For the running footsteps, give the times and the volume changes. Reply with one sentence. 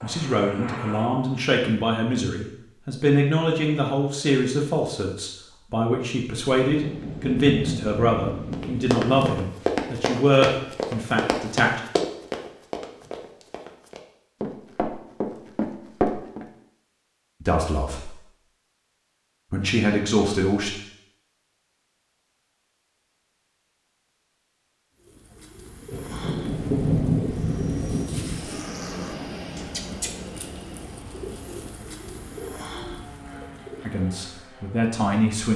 You can hear the running footsteps from 8.5 to 16.4 s, getting quieter then louder.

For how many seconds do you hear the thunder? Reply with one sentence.
You can hear the thunder for 5 seconds altogether.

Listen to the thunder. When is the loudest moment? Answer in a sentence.
The volume of the thunder peaks at 27 seconds.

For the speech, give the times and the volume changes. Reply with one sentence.
You can hear the speech from 0.0 to 11.8 s, at a steady volume; briefly from 17.4 to 18.1 s; briefly from 19.5 to 20.7 s; and briefly from 33.9 to 35.5 s.